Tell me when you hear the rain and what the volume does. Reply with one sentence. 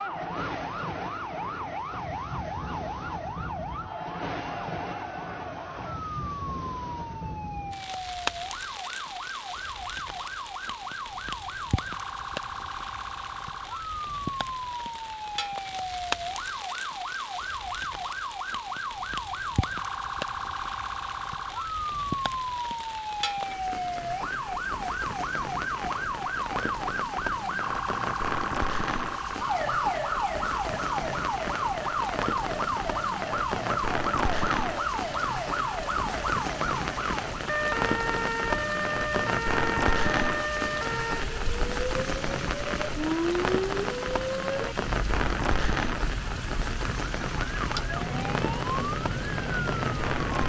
The rain can be heard from 0.1 to 50.4 s, getting louder.